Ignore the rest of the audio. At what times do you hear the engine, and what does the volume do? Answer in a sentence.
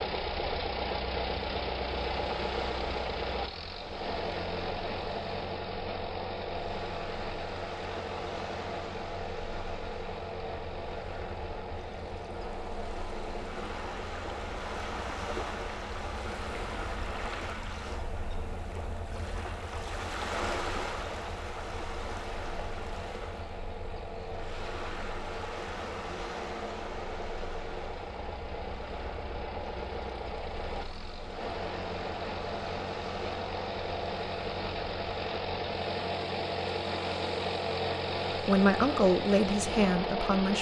The engine can be heard from 0.0 to 40.5 s, getting quieter then louder.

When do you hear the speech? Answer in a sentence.
The speech can be heard from 38.3 to 40.5 s.